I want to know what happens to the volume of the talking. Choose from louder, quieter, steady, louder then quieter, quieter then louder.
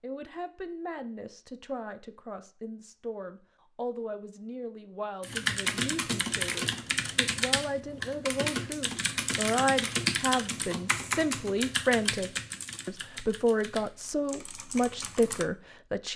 louder.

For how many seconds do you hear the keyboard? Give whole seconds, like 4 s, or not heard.
10 s.